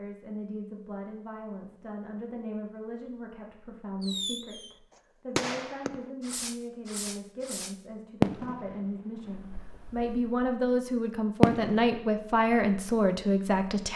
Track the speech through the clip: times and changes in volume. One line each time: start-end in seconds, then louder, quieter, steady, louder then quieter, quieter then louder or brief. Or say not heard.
0.0-13.9 louder.